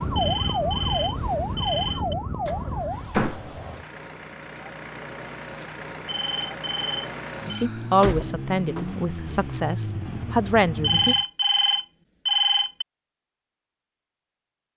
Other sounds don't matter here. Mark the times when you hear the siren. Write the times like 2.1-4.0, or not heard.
0.0-3.2.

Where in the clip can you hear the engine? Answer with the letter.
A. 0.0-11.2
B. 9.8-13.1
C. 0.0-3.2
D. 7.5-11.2
A.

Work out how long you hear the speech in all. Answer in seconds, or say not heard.
4 s.